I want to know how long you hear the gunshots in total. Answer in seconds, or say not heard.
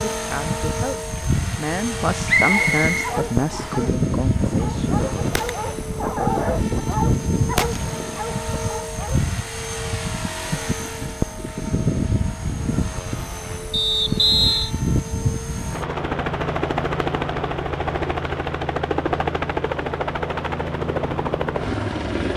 4 s.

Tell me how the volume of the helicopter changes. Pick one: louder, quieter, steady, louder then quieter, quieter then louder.
steady.